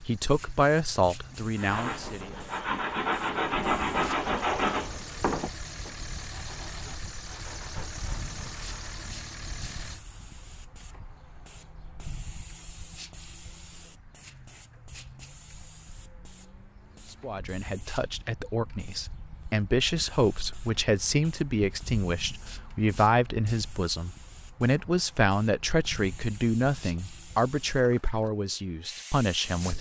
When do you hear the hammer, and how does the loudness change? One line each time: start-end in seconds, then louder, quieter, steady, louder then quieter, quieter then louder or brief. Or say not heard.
not heard.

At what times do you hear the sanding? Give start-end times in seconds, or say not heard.
1.6-9.0.